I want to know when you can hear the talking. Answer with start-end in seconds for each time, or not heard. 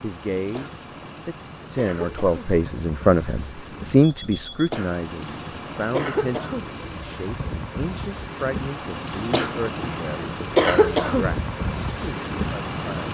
0.0-12.8.